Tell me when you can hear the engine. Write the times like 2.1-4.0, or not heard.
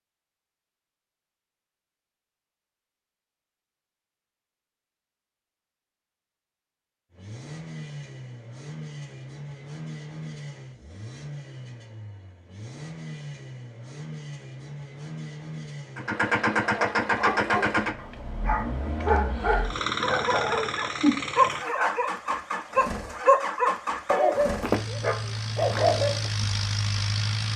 7.2-27.5.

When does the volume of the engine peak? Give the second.
17 s.